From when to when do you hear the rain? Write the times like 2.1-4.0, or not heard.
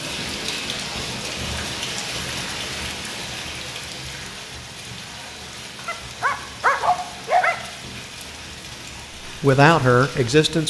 0.0-10.6.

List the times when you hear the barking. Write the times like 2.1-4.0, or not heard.
5.8-7.5.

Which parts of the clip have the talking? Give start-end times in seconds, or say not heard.
9.2-10.6.